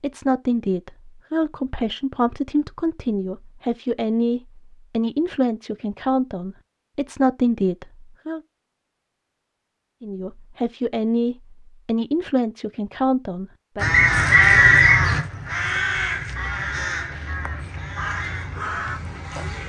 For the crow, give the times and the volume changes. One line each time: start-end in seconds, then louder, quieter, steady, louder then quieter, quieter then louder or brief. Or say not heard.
13.8-19.6 quieter.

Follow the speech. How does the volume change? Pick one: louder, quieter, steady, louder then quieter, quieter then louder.
steady.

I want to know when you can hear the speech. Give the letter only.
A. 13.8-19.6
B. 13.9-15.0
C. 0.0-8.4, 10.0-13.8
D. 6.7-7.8
C.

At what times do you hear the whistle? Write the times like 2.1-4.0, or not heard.
13.9-15.0.